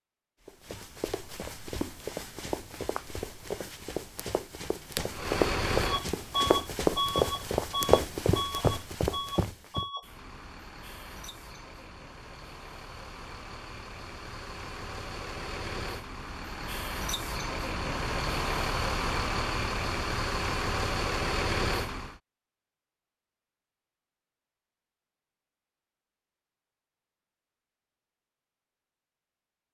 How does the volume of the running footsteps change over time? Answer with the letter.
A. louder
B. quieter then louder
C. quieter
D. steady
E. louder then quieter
A.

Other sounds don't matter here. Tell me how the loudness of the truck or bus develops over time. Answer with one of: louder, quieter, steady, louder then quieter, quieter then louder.
quieter then louder.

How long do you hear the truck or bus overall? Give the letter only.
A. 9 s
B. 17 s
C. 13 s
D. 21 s
B.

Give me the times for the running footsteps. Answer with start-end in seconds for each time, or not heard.
0.5-9.8.